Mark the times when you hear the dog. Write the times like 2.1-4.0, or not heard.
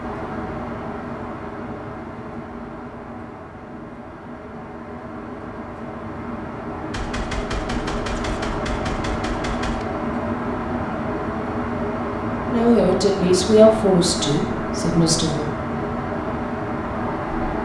not heard.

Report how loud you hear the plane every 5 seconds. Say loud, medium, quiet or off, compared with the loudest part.
medium, loud, loud, loud.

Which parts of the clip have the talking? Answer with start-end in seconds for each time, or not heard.
12.4-15.4.